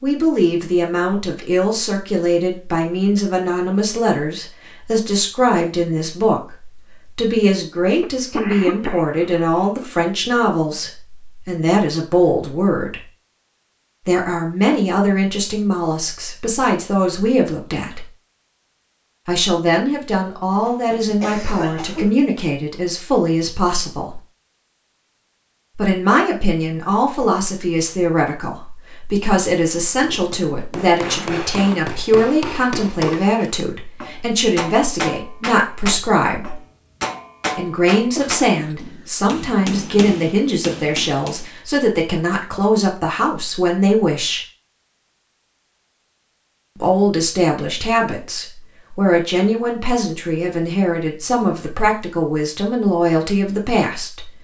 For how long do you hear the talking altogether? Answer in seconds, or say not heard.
47 s.